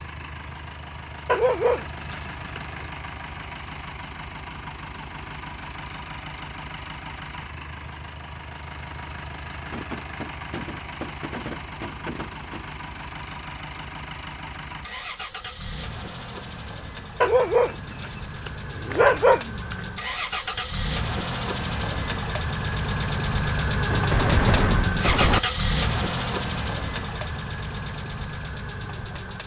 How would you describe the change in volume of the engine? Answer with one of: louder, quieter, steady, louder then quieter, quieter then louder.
louder.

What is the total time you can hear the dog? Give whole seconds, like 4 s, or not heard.
4 s.